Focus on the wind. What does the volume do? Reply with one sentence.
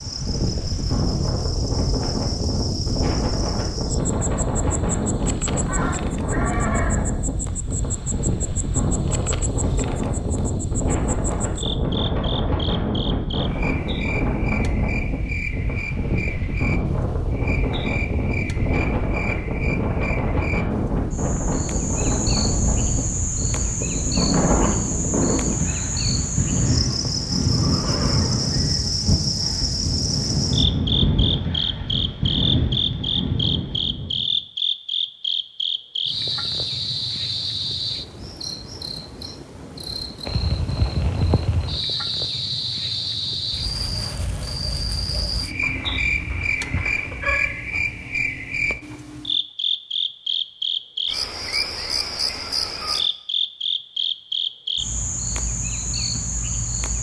The volume of the wind stays about the same.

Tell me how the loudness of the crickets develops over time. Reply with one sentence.
The volume of the crickets goes up.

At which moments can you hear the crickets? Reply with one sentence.
You can hear the crickets from 0.0 to 56.9 s.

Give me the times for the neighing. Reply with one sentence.
You can hear the neighing from 5.7 to 7.2 s, from 26.6 to 28.8 s and from 45.6 to 47.5 s.